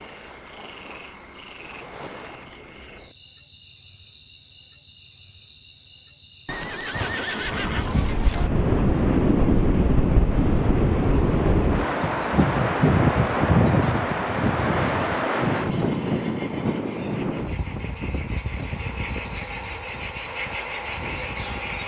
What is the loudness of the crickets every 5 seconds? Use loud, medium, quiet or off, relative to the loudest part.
quiet, quiet, quiet, medium, loud.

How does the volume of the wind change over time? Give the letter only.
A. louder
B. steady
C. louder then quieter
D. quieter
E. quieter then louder
D.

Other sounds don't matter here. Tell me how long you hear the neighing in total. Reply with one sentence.
You can hear the neighing for 2 seconds altogether.